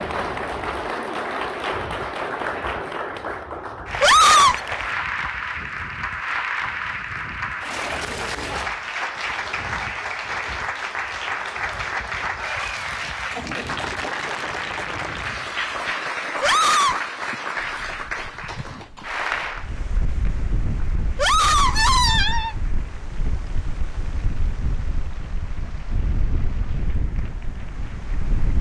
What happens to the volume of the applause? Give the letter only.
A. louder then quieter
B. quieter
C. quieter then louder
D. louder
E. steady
B.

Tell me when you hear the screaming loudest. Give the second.
4 s.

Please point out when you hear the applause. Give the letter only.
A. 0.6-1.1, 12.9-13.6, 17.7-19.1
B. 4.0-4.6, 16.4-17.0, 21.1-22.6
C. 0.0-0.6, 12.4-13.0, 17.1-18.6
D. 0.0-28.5
D.